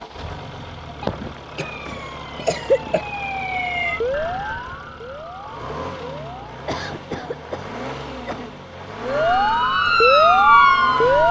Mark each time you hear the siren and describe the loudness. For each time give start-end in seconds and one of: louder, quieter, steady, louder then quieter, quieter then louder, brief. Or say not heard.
1.6-6.5 louder then quieter
9.0-11.2 brief.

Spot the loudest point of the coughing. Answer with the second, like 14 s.
3 s.